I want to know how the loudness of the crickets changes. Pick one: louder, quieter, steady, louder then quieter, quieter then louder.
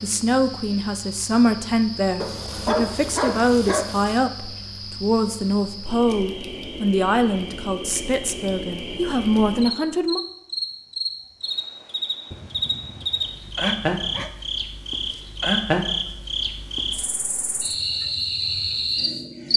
louder.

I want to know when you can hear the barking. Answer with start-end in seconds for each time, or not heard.
2.2-4.3, 12.3-14.3.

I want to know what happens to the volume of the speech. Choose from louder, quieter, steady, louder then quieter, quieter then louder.
steady.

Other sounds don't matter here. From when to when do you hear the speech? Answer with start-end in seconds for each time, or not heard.
0.0-10.2.